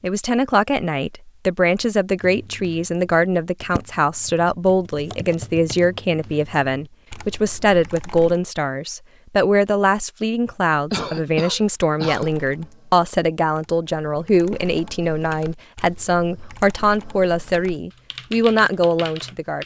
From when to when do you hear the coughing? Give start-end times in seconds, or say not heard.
10.9-12.3.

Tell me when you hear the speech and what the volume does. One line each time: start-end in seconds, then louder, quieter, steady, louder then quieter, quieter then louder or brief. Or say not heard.
0.0-19.6 steady.